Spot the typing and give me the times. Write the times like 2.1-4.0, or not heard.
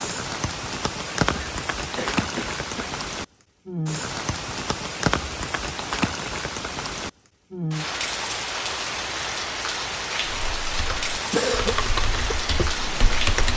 10.3-13.5.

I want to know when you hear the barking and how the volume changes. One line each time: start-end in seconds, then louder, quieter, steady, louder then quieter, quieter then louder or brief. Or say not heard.
not heard.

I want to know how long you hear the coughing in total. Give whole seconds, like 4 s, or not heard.
3 s.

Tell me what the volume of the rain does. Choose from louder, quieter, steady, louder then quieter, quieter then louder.
steady.